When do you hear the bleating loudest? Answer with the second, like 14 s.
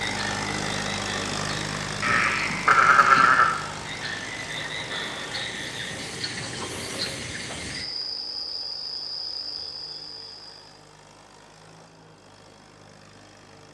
3 s.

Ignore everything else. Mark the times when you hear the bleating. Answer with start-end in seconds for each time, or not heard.
2.0-3.5.